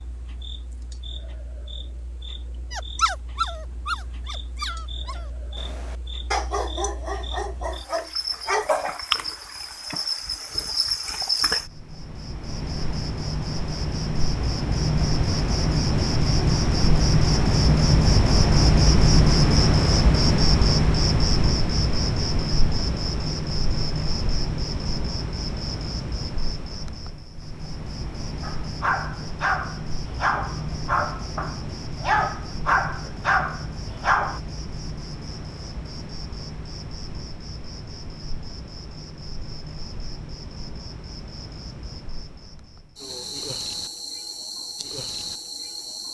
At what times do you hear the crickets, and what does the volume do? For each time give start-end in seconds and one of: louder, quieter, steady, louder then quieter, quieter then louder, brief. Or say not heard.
0.0-46.0 louder then quieter.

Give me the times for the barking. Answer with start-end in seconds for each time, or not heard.
2.7-8.7, 28.4-34.4.